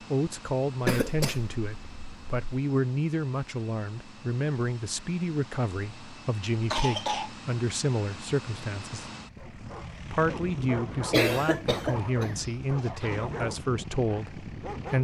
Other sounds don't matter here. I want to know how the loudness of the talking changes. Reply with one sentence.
The volume of the talking stays about the same.